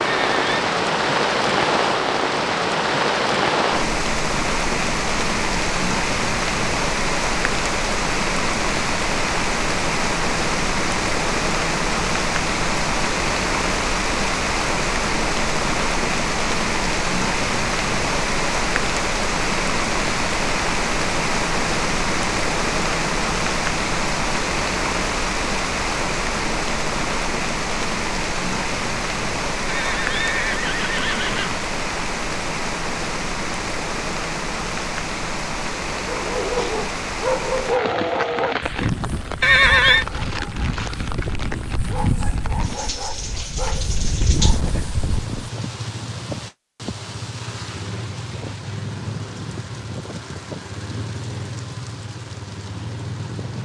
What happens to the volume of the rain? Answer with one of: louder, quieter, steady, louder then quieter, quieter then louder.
quieter.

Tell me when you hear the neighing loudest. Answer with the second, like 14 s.
40 s.